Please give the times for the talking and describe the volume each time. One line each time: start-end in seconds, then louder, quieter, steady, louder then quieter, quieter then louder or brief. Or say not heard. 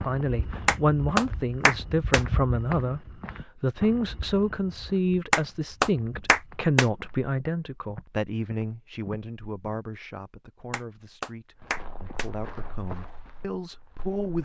0.0-14.4 quieter.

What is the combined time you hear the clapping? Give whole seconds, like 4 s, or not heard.
5 s.